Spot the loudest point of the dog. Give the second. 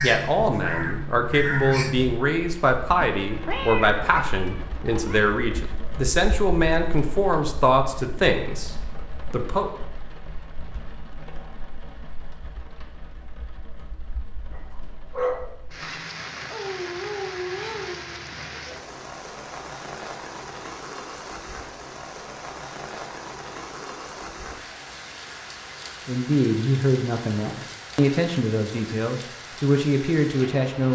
15 s.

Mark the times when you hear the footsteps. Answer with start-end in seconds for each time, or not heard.
not heard.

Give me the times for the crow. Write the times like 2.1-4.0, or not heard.
0.0-2.4.